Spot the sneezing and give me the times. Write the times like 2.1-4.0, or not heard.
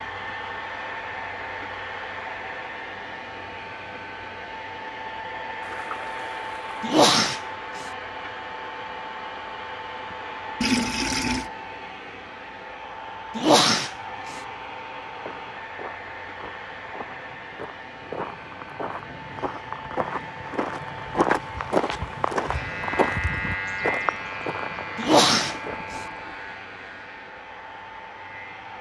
6.8-7.8, 13.3-14.3, 24.9-26.0.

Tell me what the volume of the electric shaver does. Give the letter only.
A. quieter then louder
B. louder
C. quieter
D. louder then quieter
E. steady
C.